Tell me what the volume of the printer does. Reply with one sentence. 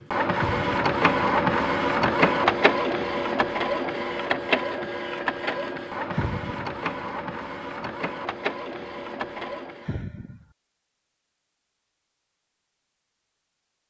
The loudness of the printer goes down.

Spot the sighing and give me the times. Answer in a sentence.
You can hear the sighing from 0.3 to 0.8 s, from 6.1 to 6.8 s and from 9.8 to 10.4 s.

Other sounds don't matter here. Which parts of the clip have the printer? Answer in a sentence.
The printer can be heard from 0.0 to 10.0 s.